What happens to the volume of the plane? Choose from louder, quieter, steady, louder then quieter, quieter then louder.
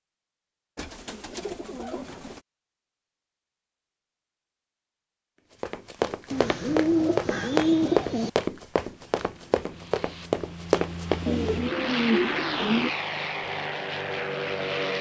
louder.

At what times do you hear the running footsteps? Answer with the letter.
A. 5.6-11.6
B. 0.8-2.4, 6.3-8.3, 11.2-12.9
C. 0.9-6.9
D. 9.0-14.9
A.